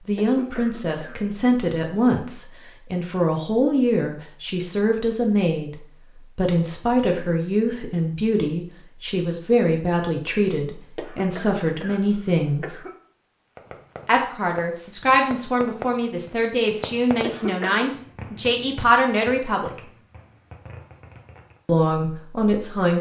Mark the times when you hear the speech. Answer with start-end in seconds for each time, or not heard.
0.1-12.8, 14.1-19.8, 21.6-22.9.